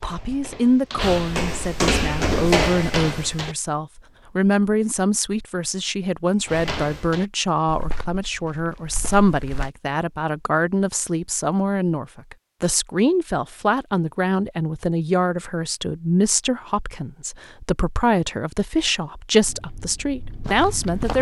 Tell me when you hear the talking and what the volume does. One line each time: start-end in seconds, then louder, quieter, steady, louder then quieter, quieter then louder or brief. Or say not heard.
0.0-21.1 steady.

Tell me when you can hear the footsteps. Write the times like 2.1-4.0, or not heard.
0.0-3.5, 6.5-9.7, 19.4-21.1.